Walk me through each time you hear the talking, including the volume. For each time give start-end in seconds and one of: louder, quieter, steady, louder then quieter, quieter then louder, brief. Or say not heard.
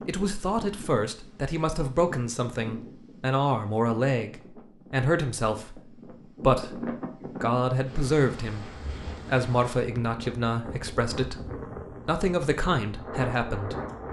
0.1-13.8 steady.